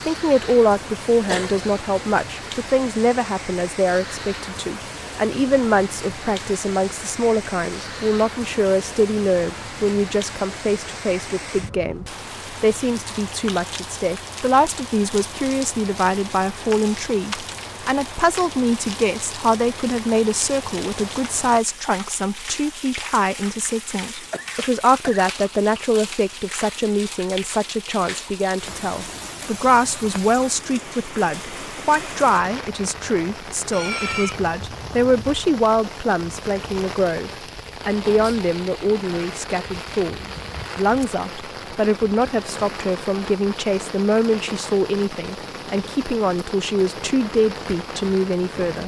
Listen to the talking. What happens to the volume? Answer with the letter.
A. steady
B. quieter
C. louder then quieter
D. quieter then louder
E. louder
A.